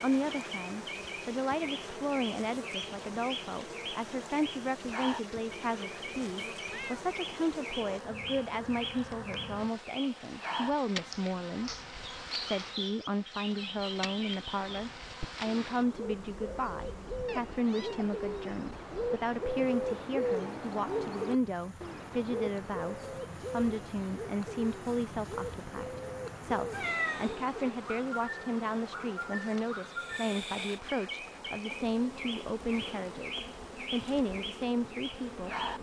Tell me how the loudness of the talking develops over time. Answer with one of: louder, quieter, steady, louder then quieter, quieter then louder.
steady.